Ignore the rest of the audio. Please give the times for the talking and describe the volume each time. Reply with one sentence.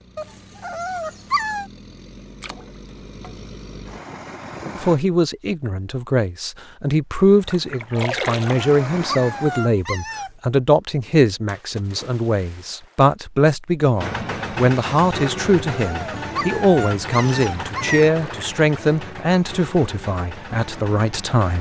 The talking can be heard from 4.8 to 21.5 s, at a steady volume.